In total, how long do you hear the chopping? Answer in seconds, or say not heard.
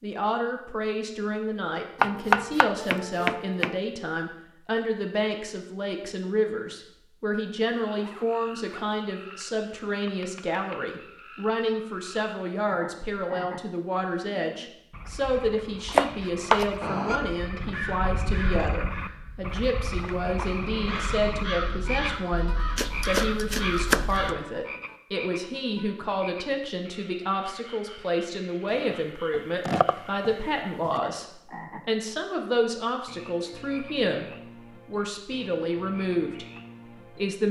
6 s.